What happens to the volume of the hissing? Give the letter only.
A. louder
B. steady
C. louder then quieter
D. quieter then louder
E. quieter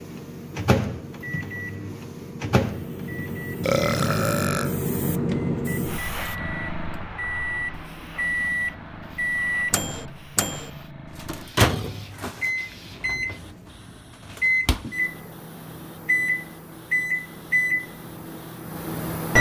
C.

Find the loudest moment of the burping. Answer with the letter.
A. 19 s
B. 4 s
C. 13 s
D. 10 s
B.